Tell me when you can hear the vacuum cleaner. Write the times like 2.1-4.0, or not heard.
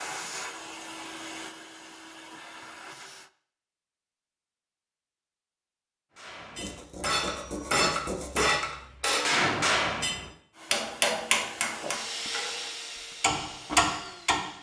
0.0-3.3, 10.5-14.5.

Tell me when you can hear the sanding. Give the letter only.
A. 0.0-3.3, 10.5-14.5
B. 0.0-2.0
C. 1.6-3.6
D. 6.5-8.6
D.